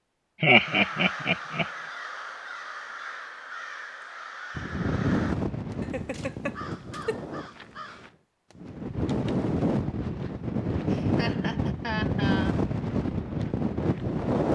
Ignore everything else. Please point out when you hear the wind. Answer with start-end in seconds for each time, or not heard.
4.5-14.5.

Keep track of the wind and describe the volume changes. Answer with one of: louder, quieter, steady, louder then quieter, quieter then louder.
quieter then louder.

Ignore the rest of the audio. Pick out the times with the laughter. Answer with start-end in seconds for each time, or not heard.
0.4-1.6, 5.8-7.2, 10.9-12.6.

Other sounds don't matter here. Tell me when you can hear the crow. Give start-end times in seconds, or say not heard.
0.5-8.7.